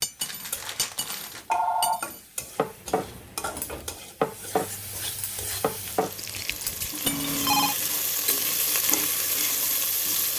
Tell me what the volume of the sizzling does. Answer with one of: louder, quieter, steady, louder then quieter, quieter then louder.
louder.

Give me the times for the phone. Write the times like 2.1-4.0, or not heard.
1.5-2.0, 7.0-7.8.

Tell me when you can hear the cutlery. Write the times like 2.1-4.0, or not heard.
0.0-7.3.